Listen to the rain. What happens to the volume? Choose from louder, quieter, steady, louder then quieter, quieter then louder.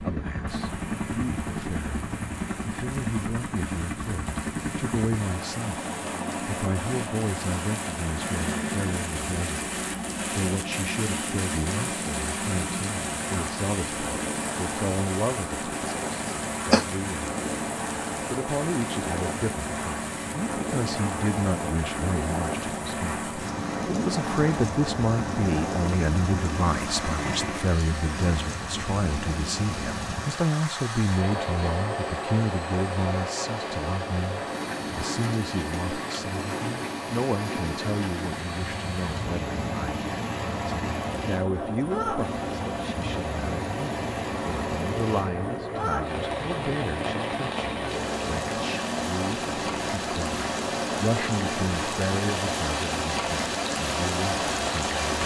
louder.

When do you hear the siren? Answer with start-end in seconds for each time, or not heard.
not heard.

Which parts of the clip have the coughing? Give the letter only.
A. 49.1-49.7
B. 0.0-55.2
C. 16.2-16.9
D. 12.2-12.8
C.